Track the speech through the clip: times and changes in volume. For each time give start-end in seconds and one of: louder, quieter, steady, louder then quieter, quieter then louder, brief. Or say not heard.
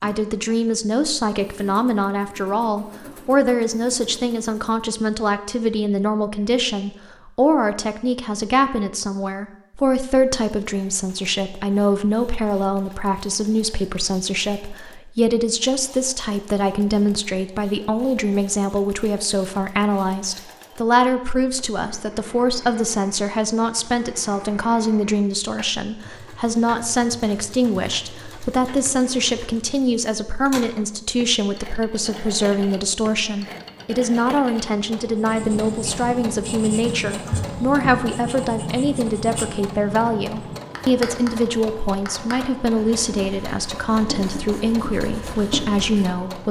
0.0-46.4 steady.